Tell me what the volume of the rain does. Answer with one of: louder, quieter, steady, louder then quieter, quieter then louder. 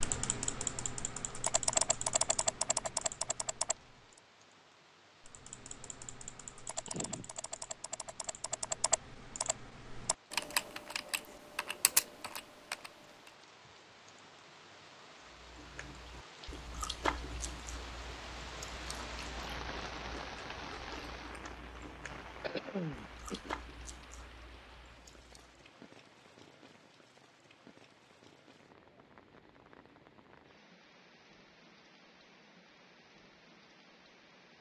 louder then quieter.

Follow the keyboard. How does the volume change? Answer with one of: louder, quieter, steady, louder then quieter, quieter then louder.
quieter then louder.